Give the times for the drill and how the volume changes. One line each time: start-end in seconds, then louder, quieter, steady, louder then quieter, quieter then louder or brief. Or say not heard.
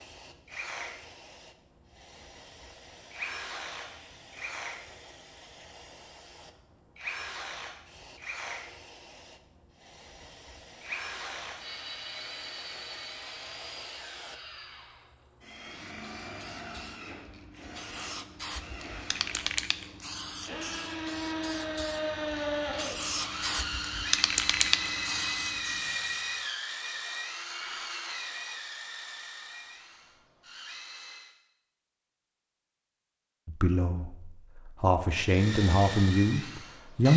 0.0-19.5 steady
20.4-31.3 quieter
35.2-37.1 brief.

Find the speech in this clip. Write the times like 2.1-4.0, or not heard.
33.5-37.1.